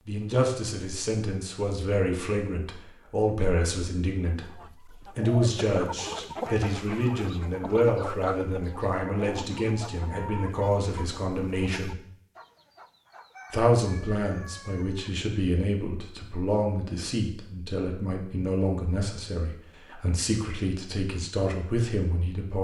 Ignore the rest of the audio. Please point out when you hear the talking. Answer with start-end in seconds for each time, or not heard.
0.1-12.0, 13.5-22.6.